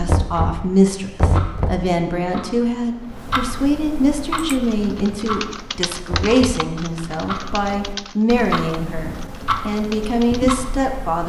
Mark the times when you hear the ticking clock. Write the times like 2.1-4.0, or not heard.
0.0-11.2.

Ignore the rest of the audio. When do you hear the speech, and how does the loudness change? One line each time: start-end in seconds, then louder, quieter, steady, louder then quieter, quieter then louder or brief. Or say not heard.
0.0-11.2 steady.